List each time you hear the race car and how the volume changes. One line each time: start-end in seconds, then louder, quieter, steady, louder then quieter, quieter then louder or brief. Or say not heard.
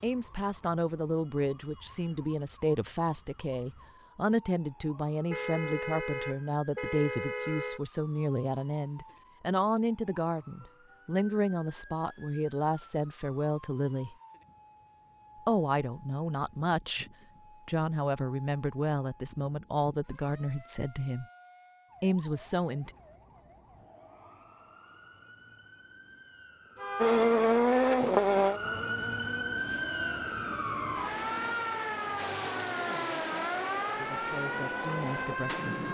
27.0-35.5 quieter.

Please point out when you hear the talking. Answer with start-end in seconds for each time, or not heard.
0.0-14.2, 15.4-17.1, 17.6-21.2, 22.0-22.9, 32.9-35.8.